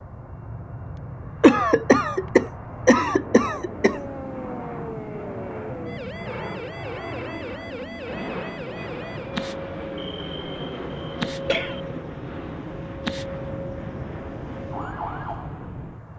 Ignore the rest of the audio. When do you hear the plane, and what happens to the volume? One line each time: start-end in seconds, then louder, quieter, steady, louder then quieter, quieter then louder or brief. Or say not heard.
0.0-16.1 steady.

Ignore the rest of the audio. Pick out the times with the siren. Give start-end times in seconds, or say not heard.
3.8-16.1.